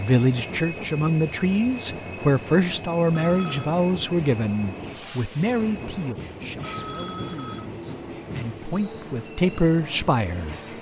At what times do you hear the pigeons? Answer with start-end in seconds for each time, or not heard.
not heard.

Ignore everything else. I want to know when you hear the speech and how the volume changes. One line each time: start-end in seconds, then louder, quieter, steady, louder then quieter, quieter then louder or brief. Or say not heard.
0.0-10.6 quieter then louder.